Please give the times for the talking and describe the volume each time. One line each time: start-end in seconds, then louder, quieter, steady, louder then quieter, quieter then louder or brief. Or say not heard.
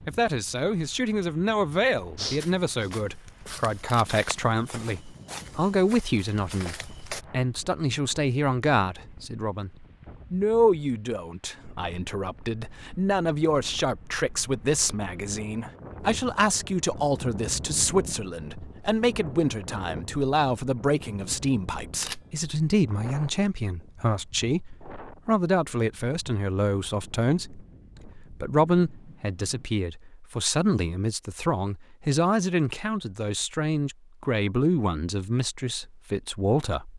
0.1-36.9 steady.